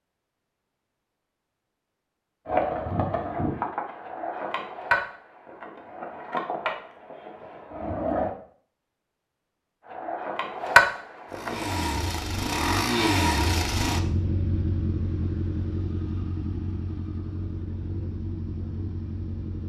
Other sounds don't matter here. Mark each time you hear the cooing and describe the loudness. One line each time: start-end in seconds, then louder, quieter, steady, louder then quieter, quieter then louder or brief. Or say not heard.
not heard.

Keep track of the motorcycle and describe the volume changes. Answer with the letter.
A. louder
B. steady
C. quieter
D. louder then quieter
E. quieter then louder
C.